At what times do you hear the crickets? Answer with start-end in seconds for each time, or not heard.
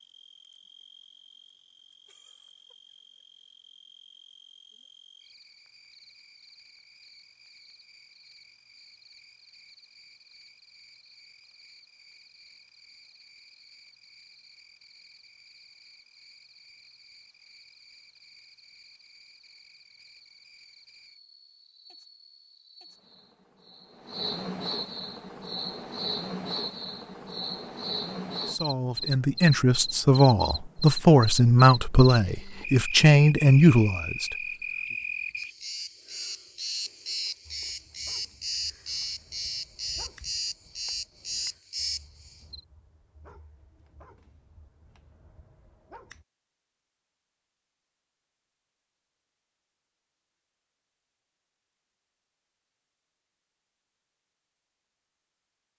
0.0-42.6.